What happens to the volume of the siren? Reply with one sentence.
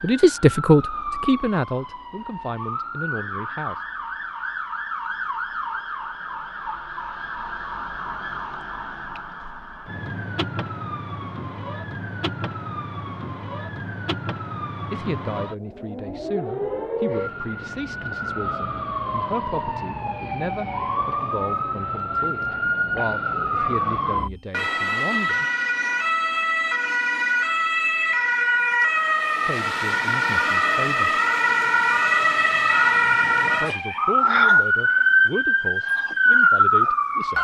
The volume of the siren goes up.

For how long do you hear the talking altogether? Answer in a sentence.
You can hear the talking for 20 seconds altogether.